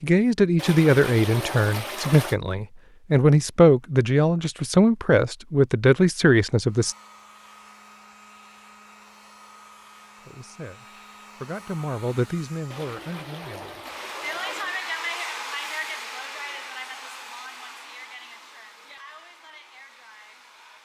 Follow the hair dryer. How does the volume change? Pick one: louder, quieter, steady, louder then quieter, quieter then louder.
louder then quieter.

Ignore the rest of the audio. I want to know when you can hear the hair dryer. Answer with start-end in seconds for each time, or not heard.
6.7-20.8.